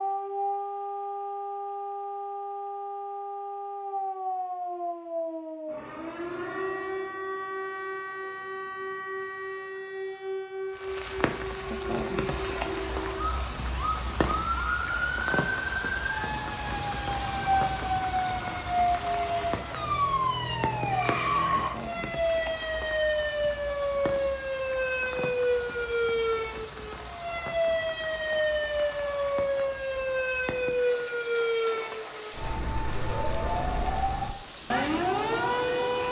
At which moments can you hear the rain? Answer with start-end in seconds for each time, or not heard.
10.8-36.0.